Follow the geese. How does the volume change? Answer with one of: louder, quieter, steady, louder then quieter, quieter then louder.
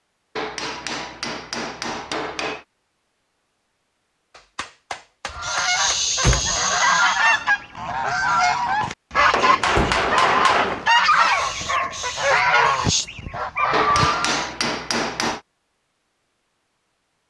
steady.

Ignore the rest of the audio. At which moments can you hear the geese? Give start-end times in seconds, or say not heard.
5.3-14.5.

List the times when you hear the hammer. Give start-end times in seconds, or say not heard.
0.3-2.6, 4.3-6.4, 9.3-10.9, 13.7-15.4.